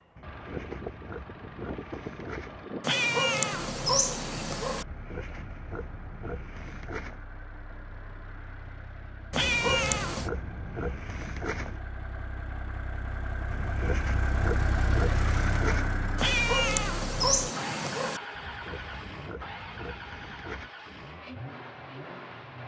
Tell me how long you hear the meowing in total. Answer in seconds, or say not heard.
5 s.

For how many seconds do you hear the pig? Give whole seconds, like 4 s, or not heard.
12 s.